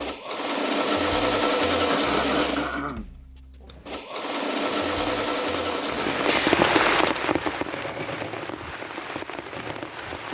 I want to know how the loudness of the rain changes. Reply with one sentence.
The volume of the rain goes up, then down.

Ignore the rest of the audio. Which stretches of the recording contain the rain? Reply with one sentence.
You can hear the rain from 4.6 to 10.2 s.